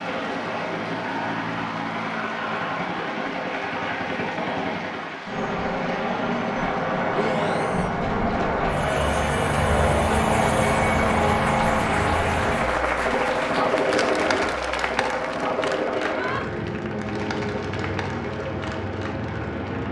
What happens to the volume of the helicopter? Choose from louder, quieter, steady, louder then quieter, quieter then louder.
louder then quieter.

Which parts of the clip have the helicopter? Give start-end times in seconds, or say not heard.
0.0-19.8.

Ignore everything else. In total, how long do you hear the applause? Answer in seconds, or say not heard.
20 s.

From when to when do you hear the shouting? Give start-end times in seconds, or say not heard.
7.1-7.9, 15.9-16.4.